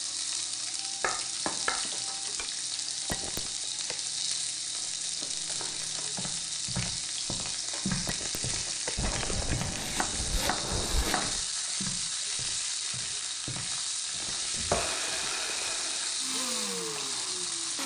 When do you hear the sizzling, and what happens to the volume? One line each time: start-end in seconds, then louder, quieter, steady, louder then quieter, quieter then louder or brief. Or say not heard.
0.0-17.8 steady.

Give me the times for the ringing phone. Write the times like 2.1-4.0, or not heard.
3.0-4.0, 8.1-9.6, 14.2-15.8.